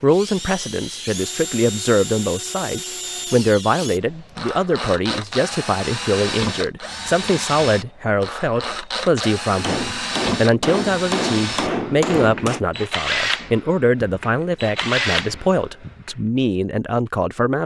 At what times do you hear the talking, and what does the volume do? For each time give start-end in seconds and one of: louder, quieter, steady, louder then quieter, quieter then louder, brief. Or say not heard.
0.0-17.6 steady.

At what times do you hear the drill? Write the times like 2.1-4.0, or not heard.
0.1-16.1.